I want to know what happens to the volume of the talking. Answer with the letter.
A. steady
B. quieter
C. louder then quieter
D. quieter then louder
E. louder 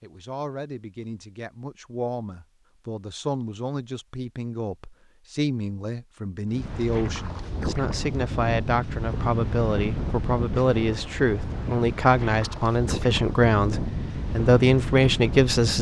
E.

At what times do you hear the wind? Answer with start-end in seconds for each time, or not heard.
6.5-15.7.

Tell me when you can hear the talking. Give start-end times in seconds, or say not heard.
0.0-15.7.